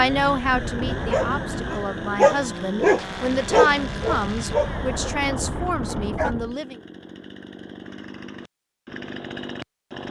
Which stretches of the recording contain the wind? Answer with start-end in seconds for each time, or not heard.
0.0-6.5.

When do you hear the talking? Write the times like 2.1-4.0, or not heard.
0.0-6.8.